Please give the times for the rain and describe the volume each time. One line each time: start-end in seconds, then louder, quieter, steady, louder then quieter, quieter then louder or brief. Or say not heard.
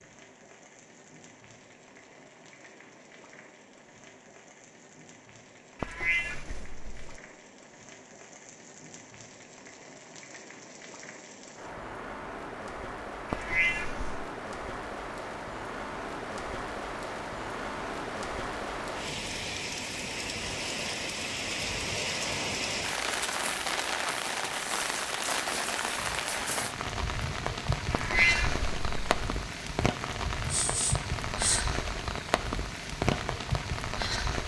0.0-34.4 louder.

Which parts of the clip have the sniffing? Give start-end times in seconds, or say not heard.
30.4-31.6.